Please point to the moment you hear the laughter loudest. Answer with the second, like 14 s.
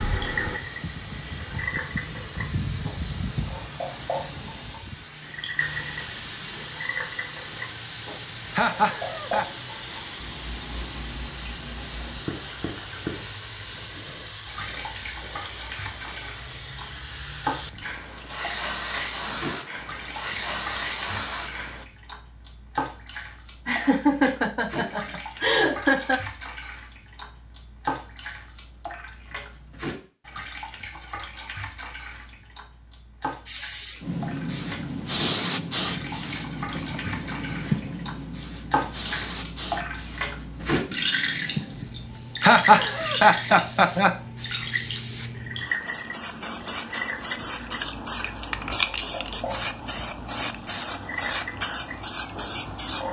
43 s.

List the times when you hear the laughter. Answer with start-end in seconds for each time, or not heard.
8.6-9.4, 23.6-26.2, 42.4-44.1.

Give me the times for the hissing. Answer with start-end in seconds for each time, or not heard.
0.0-21.9, 33.5-53.0.